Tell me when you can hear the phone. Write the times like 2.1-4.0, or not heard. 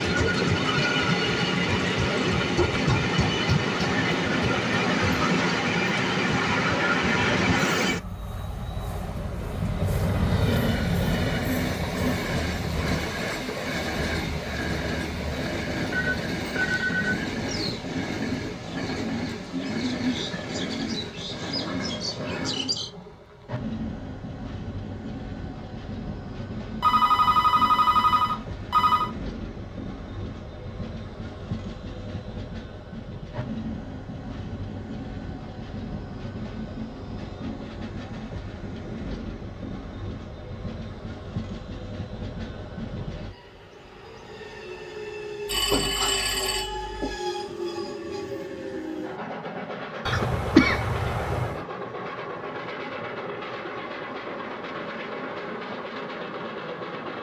15.9-17.1, 26.8-29.1, 45.5-47.1.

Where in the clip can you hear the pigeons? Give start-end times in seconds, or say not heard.
16.6-22.9.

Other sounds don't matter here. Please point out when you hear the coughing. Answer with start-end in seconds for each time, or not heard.
50.0-51.6.